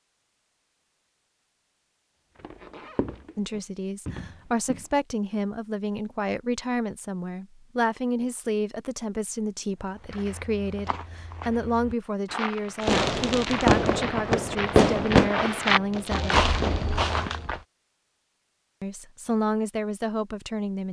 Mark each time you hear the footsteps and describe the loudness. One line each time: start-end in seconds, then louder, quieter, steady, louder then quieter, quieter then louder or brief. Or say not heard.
2.4-4.9 brief
9.8-17.6 louder.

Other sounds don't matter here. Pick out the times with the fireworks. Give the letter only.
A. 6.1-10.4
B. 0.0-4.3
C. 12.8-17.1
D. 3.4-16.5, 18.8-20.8
C.